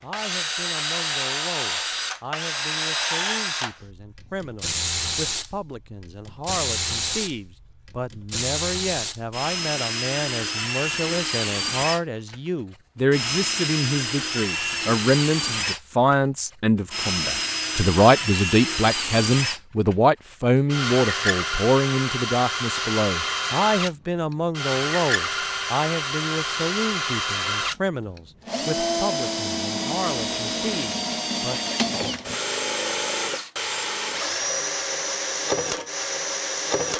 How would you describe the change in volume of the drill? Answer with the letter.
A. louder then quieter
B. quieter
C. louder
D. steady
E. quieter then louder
D.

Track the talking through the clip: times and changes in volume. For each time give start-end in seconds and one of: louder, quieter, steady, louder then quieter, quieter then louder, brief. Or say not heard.
0.0-31.6 louder then quieter.